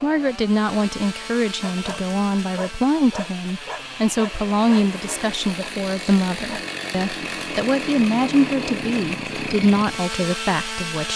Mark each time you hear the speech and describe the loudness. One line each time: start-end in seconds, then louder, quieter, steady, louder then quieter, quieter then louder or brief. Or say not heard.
0.0-11.1 steady.